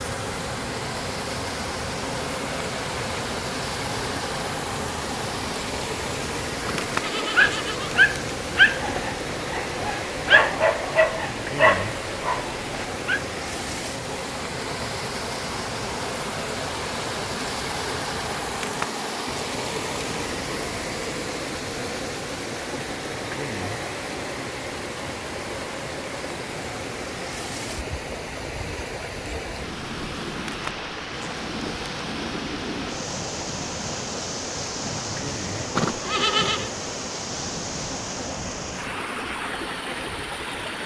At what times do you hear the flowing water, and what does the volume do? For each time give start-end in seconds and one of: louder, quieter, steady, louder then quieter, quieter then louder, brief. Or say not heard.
0.0-40.8 steady.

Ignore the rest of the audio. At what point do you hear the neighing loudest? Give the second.
36 s.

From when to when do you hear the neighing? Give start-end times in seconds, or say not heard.
6.7-8.0, 35.8-36.7.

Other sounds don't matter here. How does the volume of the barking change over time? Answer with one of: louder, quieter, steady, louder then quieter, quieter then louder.
quieter.